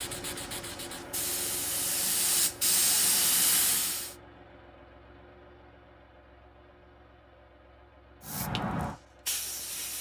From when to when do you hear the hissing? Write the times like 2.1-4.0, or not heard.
0.0-4.2, 8.2-9.9.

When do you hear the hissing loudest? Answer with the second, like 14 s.
3 s.